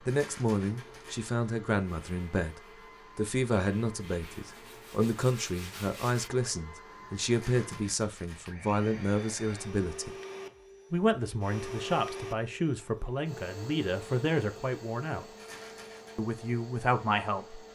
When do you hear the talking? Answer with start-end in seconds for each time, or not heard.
0.0-10.2, 10.9-15.2, 16.1-17.6.